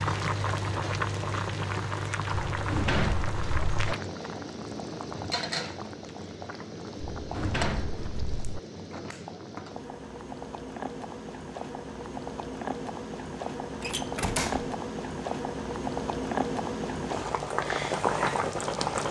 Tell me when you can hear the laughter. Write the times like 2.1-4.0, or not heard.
not heard.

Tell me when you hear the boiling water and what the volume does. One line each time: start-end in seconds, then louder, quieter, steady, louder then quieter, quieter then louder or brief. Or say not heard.
0.0-19.0 quieter then louder.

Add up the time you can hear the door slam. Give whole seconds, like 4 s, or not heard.
4 s.